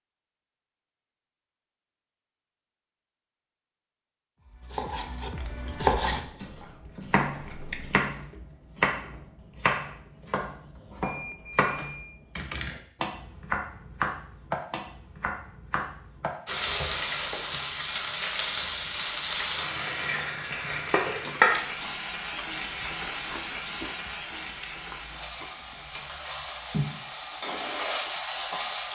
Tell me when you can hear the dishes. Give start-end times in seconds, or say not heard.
not heard.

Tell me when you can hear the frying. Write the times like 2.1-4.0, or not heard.
16.4-28.9.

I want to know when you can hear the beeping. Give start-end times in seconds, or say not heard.
11.1-12.2.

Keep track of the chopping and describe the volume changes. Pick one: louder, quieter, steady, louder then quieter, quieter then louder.
quieter.